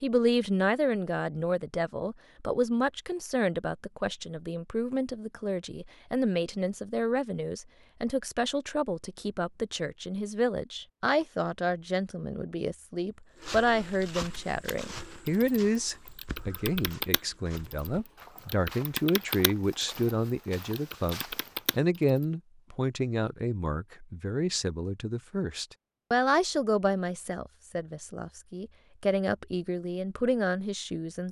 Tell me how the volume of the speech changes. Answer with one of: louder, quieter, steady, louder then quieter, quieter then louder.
steady.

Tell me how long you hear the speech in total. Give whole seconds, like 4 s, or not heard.
31 s.